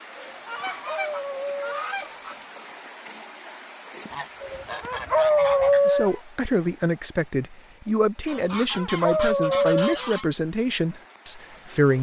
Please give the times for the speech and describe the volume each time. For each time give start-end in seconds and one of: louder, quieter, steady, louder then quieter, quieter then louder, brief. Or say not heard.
5.8-11.9 steady.